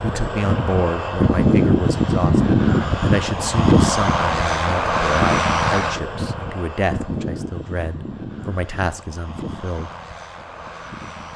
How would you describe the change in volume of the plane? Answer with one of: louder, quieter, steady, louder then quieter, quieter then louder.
quieter.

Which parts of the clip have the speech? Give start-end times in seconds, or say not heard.
0.0-9.9.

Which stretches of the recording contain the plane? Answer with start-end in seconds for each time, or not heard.
0.0-11.3.